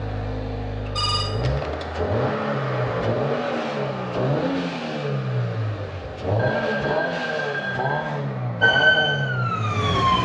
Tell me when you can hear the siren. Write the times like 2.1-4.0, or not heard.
8.6-10.2.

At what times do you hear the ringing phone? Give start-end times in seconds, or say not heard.
0.9-1.9, 6.3-8.2.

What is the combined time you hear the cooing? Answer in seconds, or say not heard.
not heard.